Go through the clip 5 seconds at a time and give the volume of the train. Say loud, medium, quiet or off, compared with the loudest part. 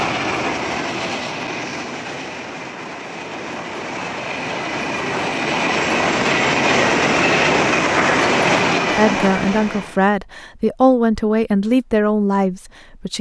medium, loud, off.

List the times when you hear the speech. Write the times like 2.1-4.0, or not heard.
8.8-13.1.